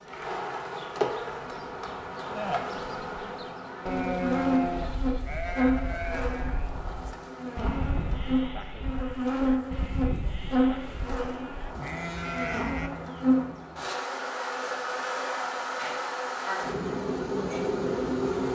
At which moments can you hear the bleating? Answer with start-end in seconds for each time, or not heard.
2.4-12.9.